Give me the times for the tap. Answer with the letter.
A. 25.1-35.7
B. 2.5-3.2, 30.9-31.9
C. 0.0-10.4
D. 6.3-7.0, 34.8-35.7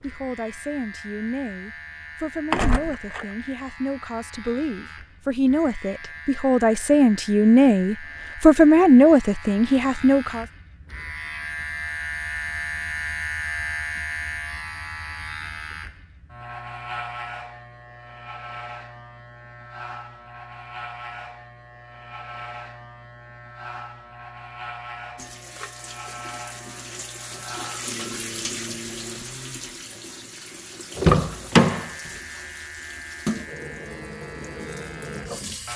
A.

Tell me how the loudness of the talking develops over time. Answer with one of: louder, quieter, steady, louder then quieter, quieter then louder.
louder.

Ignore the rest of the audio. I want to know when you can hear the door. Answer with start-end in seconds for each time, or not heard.
2.5-3.2, 30.9-31.9.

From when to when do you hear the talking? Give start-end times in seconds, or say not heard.
0.0-10.4.